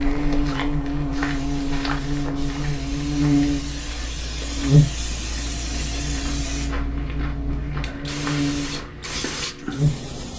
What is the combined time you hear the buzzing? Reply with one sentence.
You can hear the buzzing for 10 seconds altogether.